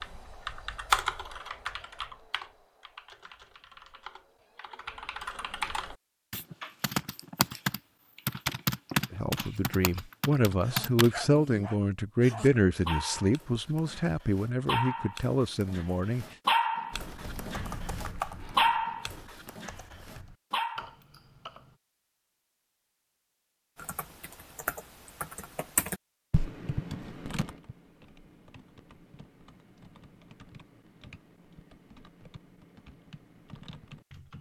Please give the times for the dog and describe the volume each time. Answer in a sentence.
You can hear the dog from 10.6 to 20.9 s, getting louder.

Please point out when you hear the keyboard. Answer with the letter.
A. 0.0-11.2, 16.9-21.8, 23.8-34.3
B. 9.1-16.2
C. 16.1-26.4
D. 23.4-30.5
A.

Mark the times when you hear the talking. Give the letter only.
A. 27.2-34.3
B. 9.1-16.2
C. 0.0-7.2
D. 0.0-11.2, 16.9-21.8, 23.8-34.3
B.